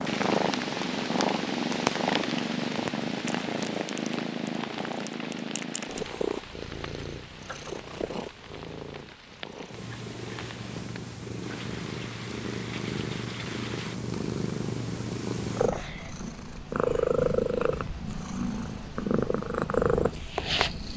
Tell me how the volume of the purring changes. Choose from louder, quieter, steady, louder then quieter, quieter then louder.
quieter then louder.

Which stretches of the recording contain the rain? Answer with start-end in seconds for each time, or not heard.
0.0-13.9.